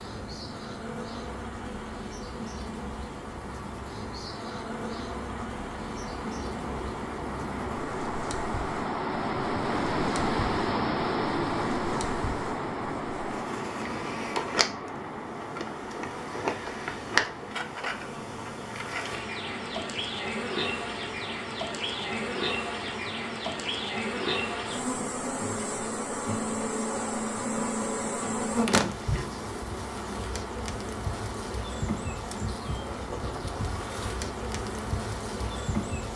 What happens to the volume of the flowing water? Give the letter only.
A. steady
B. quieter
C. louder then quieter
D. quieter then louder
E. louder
C.